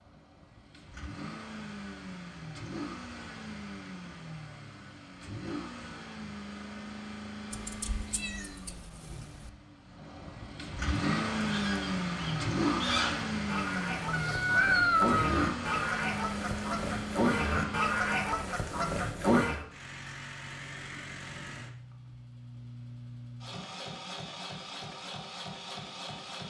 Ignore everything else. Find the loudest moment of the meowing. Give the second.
15 s.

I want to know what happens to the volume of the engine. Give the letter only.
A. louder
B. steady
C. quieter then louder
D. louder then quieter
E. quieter
D.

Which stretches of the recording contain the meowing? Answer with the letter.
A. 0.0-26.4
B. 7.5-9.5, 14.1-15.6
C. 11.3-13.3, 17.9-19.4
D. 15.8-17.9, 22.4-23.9
B.